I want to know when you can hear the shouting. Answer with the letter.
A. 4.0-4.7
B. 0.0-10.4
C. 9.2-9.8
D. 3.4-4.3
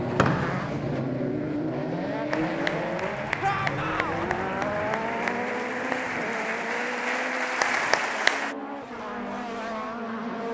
D.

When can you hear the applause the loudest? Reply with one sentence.
The loudest moment of the applause is at 8 seconds.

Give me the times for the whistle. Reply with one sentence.
The whistle can be heard from 0.1 to 0.8 s.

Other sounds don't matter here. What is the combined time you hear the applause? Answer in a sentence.
You can hear the applause for 6 seconds altogether.